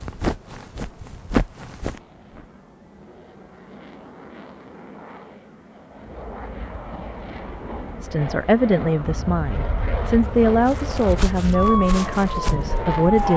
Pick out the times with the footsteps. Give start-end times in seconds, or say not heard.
0.0-2.5, 10.6-13.3.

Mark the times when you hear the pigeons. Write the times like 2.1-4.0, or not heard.
not heard.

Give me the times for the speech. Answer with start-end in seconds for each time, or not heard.
8.0-13.3.